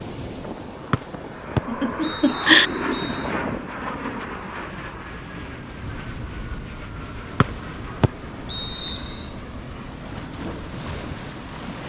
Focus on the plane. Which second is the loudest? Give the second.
3 s.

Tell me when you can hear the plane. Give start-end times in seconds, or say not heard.
0.2-11.8.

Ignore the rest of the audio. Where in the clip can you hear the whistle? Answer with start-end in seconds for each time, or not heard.
0.9-3.3, 7.4-9.2.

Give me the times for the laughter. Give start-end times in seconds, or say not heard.
1.6-2.7.